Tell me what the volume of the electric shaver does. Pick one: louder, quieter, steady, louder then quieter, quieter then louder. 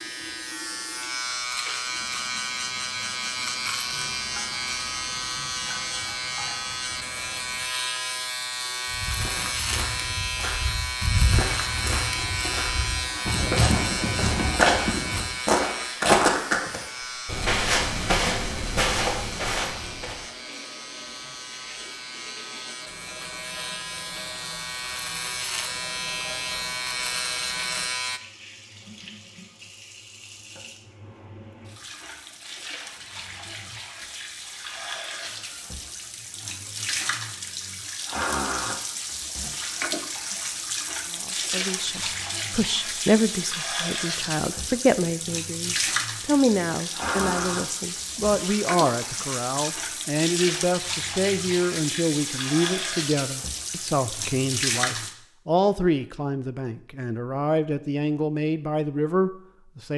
quieter then louder.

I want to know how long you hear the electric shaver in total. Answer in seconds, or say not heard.
28 s.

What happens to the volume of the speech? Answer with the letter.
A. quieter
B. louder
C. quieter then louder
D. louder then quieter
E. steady
E.